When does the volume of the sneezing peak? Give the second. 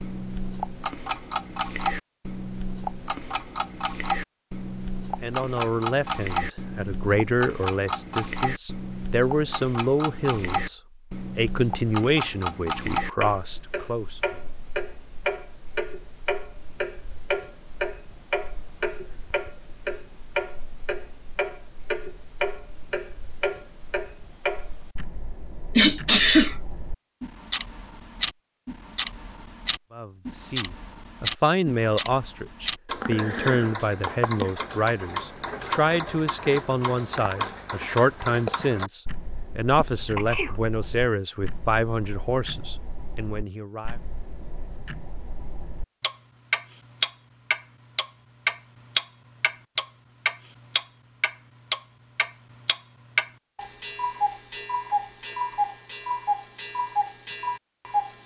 26 s.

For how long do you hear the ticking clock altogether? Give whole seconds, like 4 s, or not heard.
58 s.